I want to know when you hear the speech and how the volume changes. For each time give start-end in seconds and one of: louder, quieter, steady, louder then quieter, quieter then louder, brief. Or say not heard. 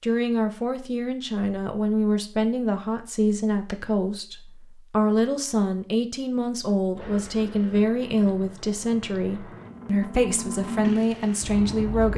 0.0-12.1 steady.